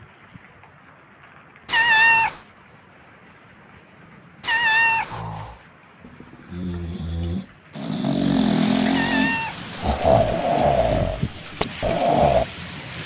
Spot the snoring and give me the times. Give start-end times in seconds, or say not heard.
5.1-12.4.